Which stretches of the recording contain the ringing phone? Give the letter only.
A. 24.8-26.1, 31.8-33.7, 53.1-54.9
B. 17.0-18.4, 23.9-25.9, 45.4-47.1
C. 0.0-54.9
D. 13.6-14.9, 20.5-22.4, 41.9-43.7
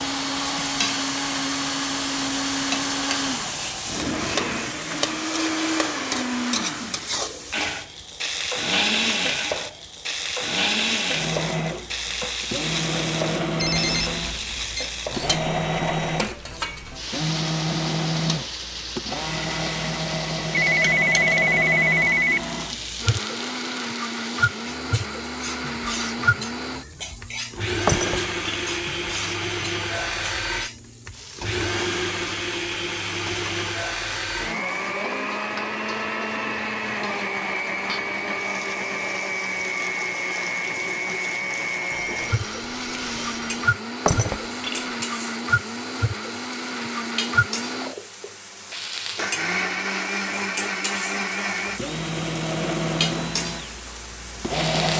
D.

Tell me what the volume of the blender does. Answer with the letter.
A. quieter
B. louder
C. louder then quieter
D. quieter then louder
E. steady
E.